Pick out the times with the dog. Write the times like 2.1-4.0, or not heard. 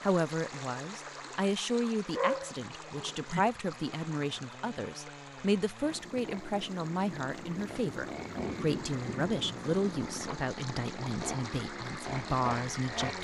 2.1-3.4.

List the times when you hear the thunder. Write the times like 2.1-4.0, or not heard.
5.9-10.3.